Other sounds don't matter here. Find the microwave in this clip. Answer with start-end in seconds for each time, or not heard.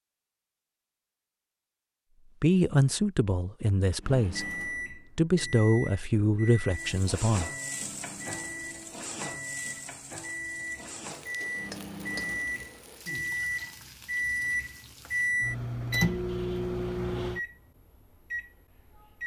4.0-19.2.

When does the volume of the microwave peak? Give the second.
16 s.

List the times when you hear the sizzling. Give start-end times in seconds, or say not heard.
6.7-15.3.